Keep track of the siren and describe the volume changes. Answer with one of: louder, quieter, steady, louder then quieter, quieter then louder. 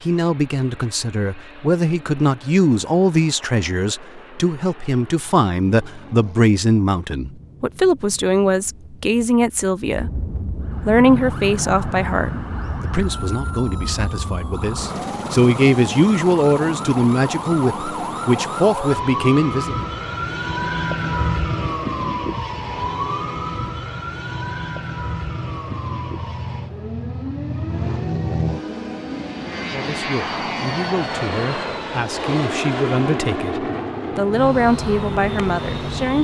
louder then quieter.